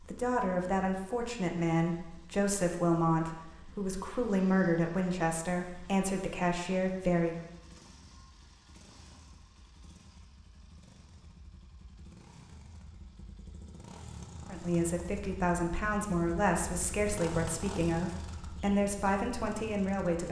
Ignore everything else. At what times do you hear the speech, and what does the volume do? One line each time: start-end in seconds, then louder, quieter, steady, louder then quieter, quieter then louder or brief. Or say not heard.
0.0-7.5 steady
14.5-20.2 steady.